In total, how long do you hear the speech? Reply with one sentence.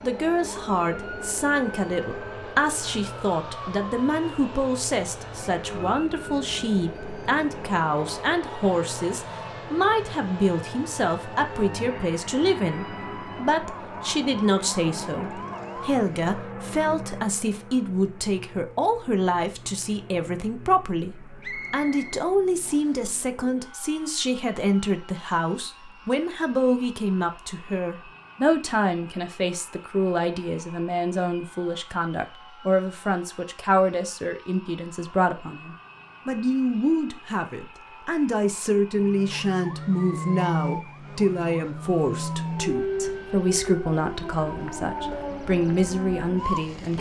You can hear the speech for 47 seconds altogether.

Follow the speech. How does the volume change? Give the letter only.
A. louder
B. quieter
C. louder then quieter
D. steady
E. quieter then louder
D.